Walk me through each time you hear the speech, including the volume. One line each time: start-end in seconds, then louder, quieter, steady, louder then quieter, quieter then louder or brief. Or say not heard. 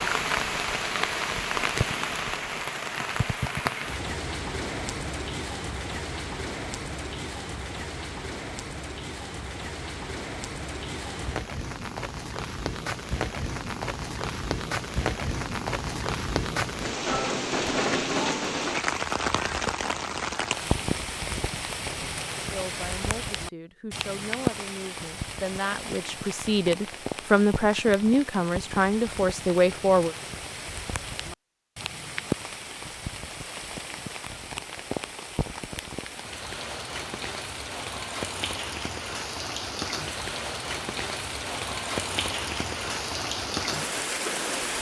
22.5-30.1 louder.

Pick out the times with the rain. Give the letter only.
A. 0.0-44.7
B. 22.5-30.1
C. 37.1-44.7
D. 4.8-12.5
A.